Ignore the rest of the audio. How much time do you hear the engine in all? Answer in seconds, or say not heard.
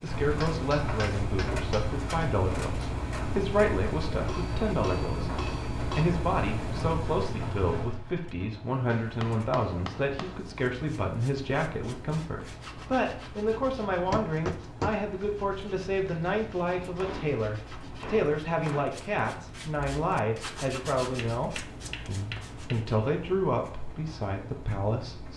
25 s.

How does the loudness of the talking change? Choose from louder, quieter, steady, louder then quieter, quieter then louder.
steady.